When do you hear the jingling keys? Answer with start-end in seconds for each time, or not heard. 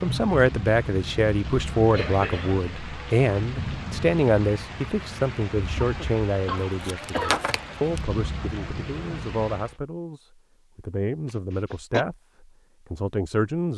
6.7-8.0.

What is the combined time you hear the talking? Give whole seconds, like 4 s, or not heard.
14 s.